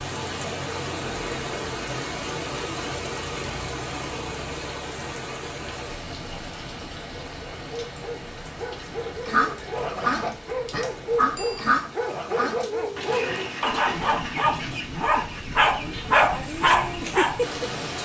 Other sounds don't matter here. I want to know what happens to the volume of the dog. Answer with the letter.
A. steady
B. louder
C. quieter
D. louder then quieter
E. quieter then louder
B.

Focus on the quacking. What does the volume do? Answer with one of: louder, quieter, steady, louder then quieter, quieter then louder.
quieter.